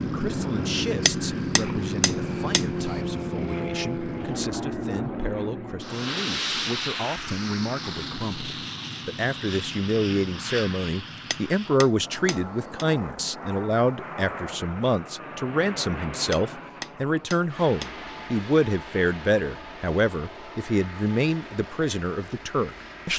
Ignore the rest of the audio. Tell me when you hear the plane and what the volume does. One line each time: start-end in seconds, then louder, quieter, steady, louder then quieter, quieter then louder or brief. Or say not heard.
0.0-23.1 quieter.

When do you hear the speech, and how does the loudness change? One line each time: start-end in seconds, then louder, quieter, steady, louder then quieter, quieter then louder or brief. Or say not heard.
0.0-23.1 louder.